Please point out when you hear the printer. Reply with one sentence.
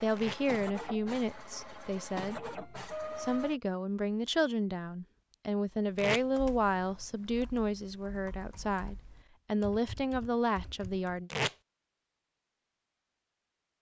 The printer can be heard from 0.0 to 3.6 s.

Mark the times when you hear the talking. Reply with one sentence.
You can hear the talking from 0.0 to 2.4 s and from 3.1 to 11.3 s.